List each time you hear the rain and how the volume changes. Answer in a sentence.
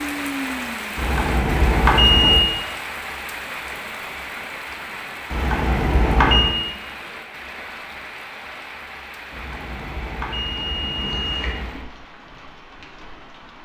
The rain can be heard from 0.0 to 13.5 s, getting quieter.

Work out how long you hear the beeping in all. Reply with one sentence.
You can hear the beeping for 5 seconds altogether.